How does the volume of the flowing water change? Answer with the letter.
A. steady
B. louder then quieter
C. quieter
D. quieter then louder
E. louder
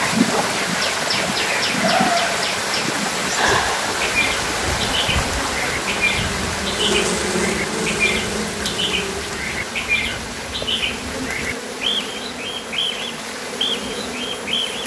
C.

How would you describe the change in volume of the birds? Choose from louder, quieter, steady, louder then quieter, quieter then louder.
steady.